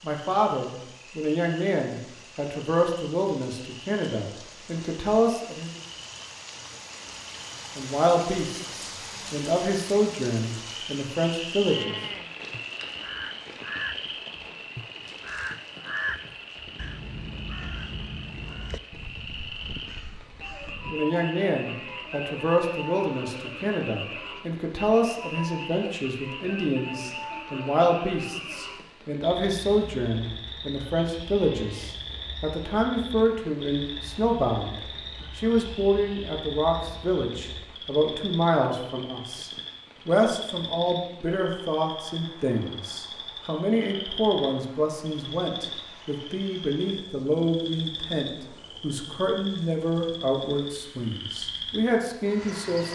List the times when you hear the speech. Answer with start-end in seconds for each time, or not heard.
0.0-5.8, 7.8-11.9, 20.9-52.9.